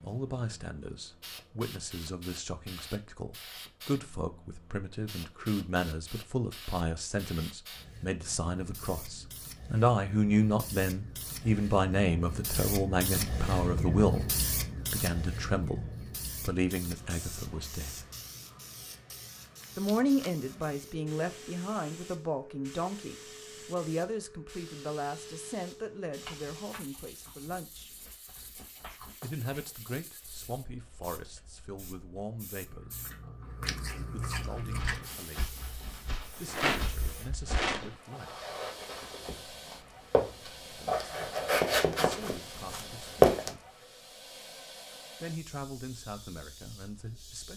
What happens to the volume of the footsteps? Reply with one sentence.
The loudness of the footsteps goes up.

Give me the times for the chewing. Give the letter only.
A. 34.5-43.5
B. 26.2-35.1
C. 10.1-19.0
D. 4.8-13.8
B.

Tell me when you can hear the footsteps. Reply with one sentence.
The footsteps can be heard from 34.5 to 43.5 s.